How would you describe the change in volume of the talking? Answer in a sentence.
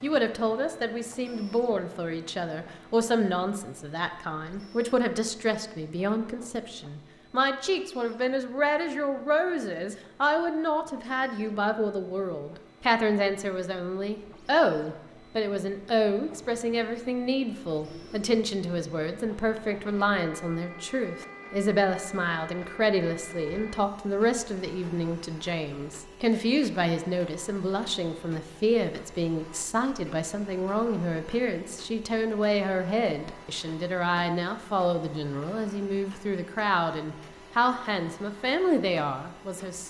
The volume of the talking stays about the same.